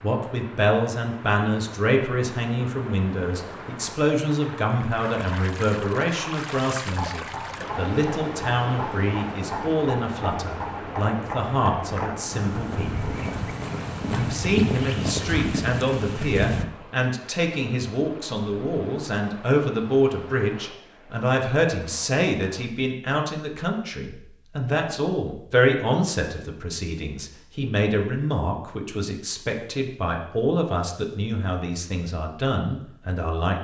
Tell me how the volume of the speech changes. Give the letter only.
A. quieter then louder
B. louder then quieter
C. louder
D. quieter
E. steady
E.